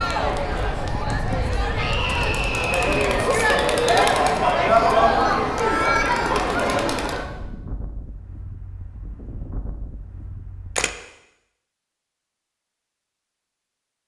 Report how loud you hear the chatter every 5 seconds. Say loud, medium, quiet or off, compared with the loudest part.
loud, loud, off.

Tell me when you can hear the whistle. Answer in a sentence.
You can't hear the whistle here.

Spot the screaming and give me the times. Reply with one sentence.
The screaming can be heard from 1.8 to 3.2 s.